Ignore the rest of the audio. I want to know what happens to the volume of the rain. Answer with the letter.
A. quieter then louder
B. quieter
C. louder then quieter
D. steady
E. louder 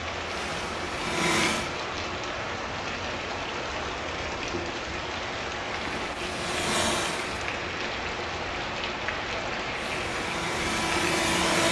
D.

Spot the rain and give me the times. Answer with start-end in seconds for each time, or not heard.
0.0-11.6.